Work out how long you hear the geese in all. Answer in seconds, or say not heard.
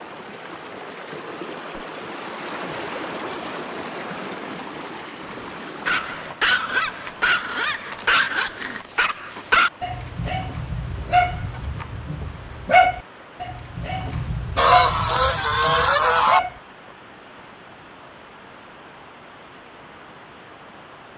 2 s.